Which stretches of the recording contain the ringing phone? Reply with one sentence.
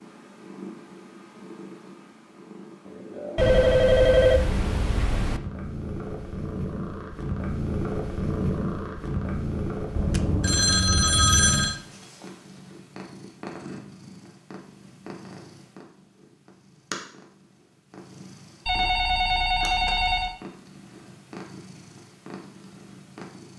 You can hear the ringing phone from 3.4 to 5.4 s, from 9.9 to 11.8 s and from 18.6 to 20.4 s.